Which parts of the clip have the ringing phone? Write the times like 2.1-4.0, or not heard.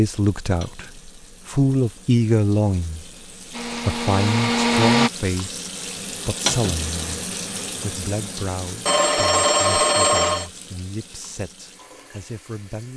8.8-10.5.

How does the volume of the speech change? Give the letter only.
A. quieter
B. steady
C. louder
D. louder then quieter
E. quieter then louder
A.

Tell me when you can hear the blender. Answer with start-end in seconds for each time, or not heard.
3.5-5.1.